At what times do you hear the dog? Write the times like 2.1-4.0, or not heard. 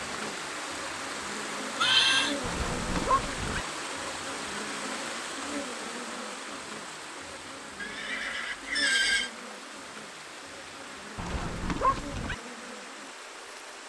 2.4-3.6, 11.2-12.3.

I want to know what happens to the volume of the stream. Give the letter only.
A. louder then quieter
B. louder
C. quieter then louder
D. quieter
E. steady
D.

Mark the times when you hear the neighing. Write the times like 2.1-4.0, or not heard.
1.7-2.4, 7.8-9.3.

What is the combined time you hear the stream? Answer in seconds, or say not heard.
14 s.